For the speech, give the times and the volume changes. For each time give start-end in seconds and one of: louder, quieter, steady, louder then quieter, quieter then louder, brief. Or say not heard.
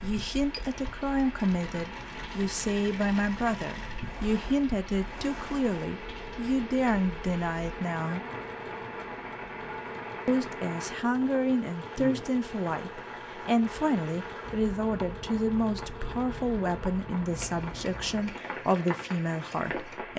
0.0-8.2 steady
10.2-20.1 steady.